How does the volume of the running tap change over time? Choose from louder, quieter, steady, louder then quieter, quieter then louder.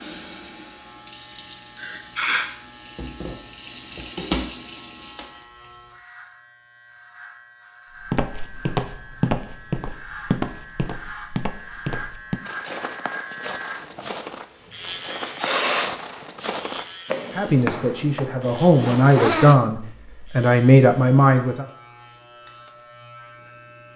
louder.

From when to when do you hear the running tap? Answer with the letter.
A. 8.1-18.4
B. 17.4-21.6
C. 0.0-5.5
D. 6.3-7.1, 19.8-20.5
C.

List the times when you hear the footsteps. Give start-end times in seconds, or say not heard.
8.1-18.4.